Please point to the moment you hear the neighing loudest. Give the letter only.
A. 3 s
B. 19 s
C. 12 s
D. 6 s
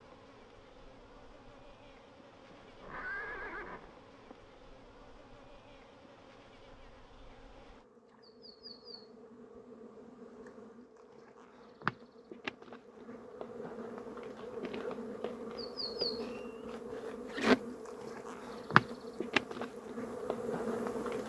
A.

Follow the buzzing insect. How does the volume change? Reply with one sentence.
The loudness of the buzzing insect goes up.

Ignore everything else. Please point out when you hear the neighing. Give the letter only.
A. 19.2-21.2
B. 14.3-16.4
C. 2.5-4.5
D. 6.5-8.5
C.